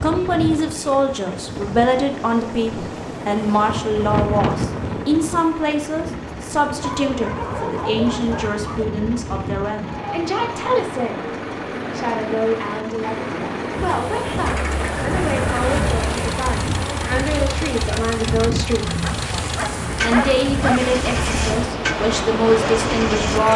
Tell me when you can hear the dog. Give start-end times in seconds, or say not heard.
6.8-8.8, 19.0-20.8.